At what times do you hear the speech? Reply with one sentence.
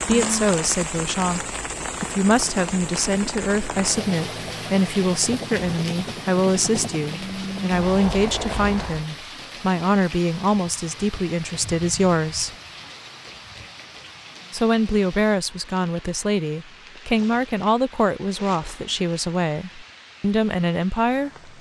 The speech can be heard from 0.0 to 12.5 s and from 14.5 to 21.5 s.